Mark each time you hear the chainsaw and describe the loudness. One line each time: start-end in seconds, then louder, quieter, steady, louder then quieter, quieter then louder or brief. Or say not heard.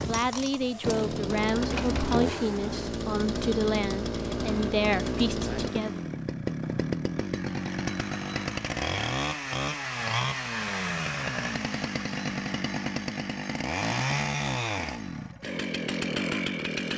0.0-16.9 steady.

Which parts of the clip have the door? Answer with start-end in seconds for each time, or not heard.
1.7-2.9.